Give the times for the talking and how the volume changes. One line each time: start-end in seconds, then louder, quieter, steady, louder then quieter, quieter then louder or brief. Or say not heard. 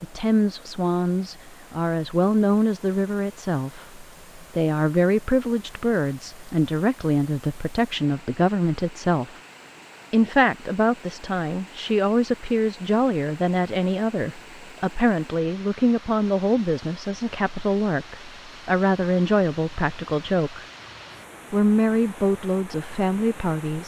0.0-9.3 steady
10.1-20.6 steady
21.5-23.8 brief.